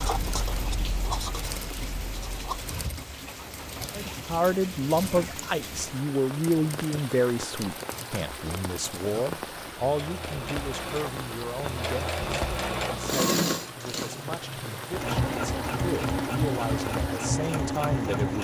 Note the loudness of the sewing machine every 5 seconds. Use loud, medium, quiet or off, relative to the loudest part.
quiet, quiet, loud, loud.